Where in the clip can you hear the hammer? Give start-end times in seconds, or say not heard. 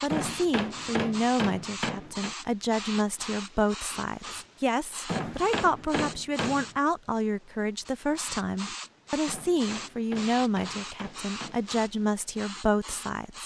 0.1-2.4, 5.0-6.8, 9.2-11.7.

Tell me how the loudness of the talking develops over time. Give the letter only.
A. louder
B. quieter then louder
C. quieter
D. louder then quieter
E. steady
E.